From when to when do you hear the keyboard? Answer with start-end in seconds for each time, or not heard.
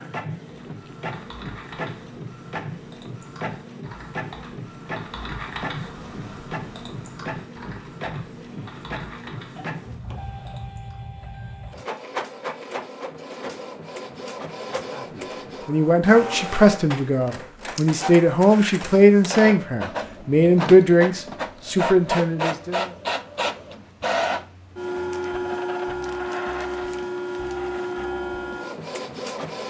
0.5-10.9.